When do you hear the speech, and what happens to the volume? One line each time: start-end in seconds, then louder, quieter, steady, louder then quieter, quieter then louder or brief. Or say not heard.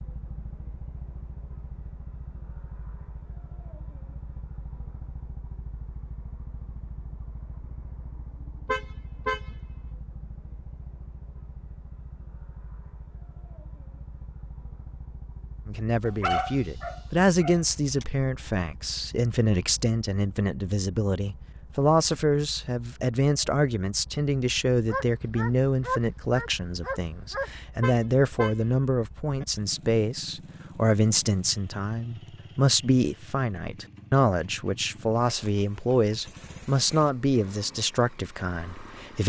15.7-39.2 steady.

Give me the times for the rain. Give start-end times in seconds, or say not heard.
not heard.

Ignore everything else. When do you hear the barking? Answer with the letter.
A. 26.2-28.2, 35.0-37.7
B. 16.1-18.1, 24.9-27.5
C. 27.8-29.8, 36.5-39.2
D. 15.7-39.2
B.